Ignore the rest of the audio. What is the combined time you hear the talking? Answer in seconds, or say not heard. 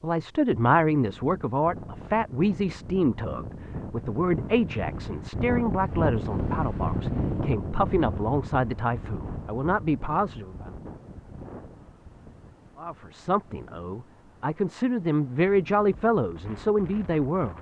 15 s.